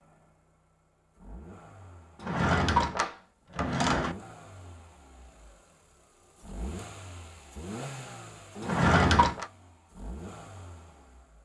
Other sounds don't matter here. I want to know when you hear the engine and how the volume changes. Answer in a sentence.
You can hear the engine from 0.0 to 11.4 s, getting louder then quieter.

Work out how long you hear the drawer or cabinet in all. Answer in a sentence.
The drawer or cabinet can be heard for 3 seconds in total.